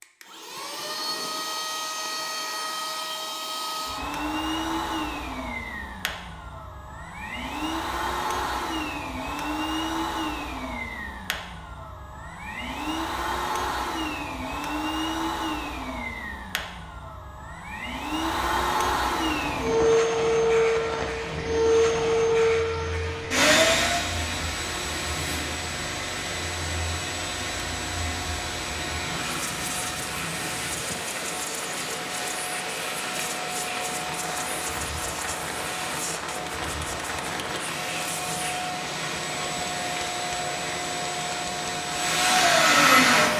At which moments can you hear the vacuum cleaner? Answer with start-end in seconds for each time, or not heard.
0.0-43.3.